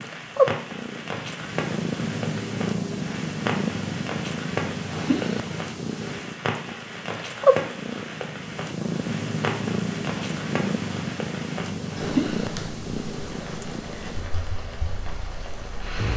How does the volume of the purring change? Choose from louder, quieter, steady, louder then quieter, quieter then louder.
quieter.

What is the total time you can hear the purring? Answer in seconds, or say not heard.
16 s.